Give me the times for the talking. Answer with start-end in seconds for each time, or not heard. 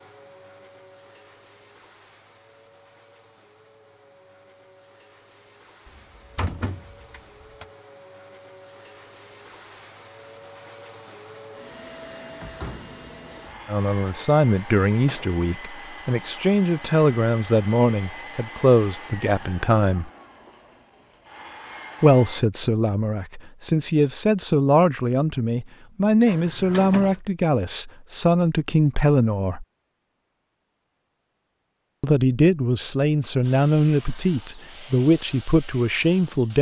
13.7-20.1, 22.0-29.6, 32.0-36.5.